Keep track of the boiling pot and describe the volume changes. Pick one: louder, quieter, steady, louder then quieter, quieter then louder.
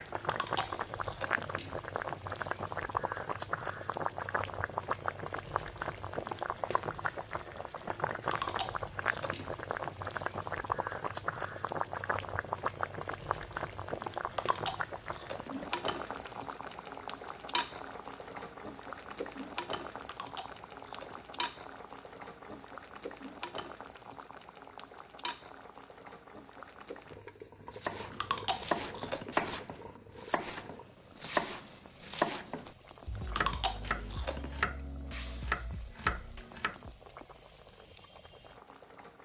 quieter.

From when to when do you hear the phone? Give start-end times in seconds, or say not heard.
not heard.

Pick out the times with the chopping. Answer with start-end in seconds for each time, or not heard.
27.7-37.0.